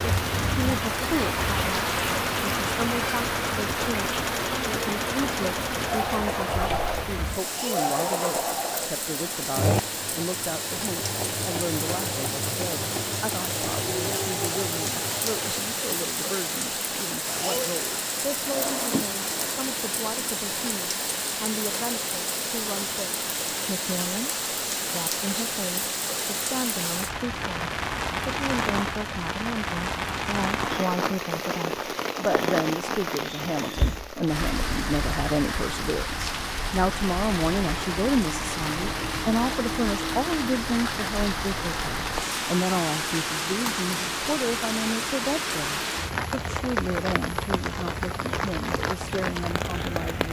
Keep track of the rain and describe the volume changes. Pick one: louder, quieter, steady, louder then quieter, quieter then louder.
steady.